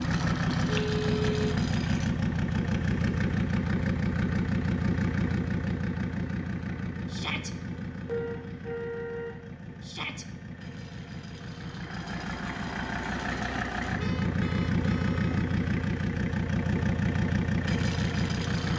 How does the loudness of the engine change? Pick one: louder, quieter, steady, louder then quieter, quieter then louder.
quieter then louder.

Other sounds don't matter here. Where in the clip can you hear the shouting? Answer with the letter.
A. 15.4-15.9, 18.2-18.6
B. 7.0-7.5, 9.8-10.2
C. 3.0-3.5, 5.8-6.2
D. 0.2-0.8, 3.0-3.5
B.